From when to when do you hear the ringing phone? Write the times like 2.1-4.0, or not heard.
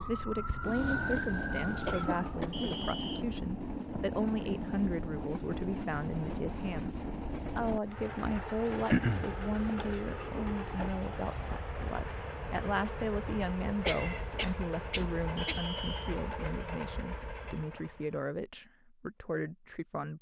not heard.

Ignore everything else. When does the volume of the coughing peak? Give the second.
9 s.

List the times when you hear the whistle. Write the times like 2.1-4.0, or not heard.
2.5-3.2, 15.3-16.1.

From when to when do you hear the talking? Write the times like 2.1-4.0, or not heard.
0.0-20.1.